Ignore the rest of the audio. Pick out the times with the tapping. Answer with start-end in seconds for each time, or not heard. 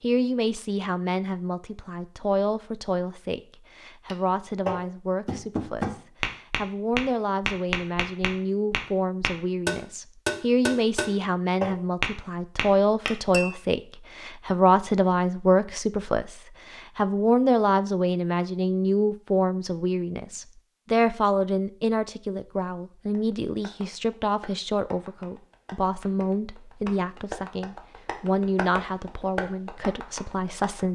4.0-13.5, 23.1-30.9.